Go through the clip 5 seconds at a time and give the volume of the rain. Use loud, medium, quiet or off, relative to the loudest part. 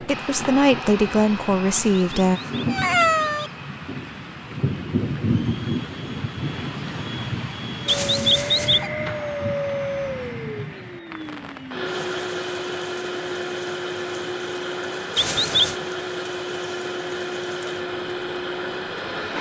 loud, loud, medium, quiet.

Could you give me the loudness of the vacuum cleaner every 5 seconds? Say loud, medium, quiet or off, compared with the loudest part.
medium, loud, loud, loud.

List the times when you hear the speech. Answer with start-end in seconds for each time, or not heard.
0.0-2.4.